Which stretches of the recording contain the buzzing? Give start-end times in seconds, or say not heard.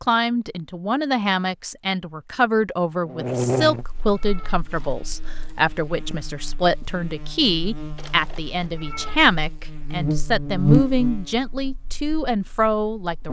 3.0-13.2.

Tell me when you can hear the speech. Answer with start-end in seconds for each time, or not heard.
0.0-13.2.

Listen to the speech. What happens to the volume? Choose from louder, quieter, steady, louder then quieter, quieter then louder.
steady.